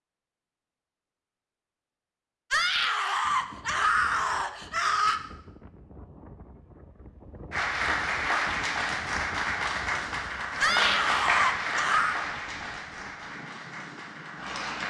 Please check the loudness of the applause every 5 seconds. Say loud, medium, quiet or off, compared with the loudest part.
off, loud, loud.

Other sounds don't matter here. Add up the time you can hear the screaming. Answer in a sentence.
You can hear the screaming for 4 seconds altogether.